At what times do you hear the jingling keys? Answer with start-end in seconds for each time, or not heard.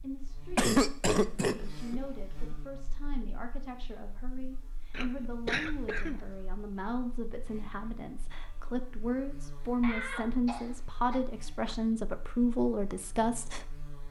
not heard.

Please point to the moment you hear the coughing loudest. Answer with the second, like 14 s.
1 s.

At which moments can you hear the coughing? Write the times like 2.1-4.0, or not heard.
0.6-2.0, 4.9-6.2, 9.8-11.8.